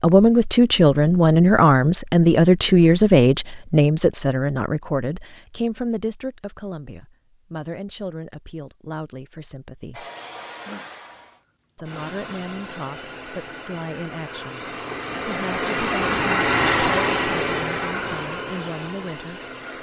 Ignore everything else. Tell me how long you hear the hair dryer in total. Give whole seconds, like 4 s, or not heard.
10 s.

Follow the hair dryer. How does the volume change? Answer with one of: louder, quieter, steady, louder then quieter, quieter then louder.
louder then quieter.